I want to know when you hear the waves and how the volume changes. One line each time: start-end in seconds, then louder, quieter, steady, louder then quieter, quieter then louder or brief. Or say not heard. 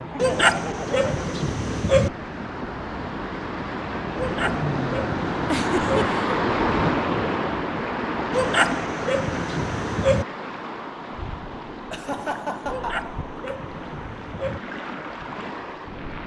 0.0-16.2 louder then quieter.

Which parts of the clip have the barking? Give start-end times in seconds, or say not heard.
0.1-2.1, 4.2-6.1, 8.3-10.2, 12.7-14.6.